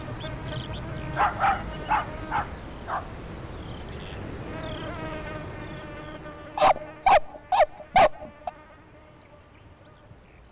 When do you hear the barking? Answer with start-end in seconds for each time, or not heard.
1.1-3.0, 6.5-8.5.